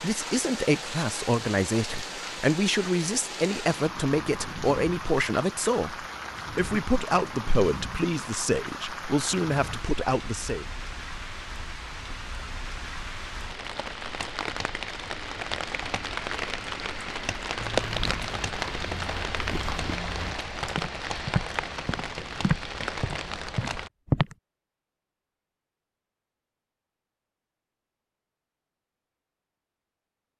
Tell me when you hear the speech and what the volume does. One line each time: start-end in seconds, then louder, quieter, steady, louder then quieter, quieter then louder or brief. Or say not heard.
0.0-10.7 steady.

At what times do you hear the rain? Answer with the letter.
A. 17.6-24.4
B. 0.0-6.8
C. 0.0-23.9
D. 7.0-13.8
C.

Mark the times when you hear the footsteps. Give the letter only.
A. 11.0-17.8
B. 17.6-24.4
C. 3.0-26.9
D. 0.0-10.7
B.